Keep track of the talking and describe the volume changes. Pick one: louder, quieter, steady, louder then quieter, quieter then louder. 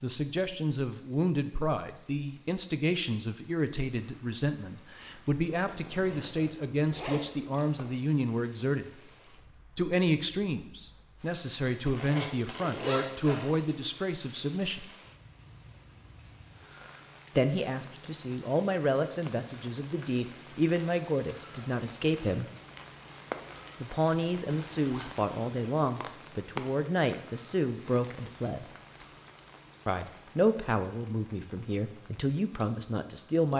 steady.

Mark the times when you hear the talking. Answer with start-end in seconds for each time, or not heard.
0.0-9.0, 9.8-14.9, 17.4-22.4, 23.8-28.6, 29.9-33.5.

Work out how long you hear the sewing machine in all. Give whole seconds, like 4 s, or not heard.
not heard.